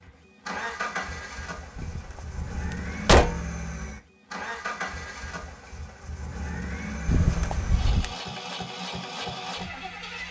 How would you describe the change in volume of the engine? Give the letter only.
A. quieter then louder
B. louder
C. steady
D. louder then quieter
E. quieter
C.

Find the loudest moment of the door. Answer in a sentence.
The loudest moment of the door is at 3 seconds.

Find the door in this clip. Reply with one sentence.
The door can be heard from 1.8 to 3.4 s and from 7.0 to 8.2 s.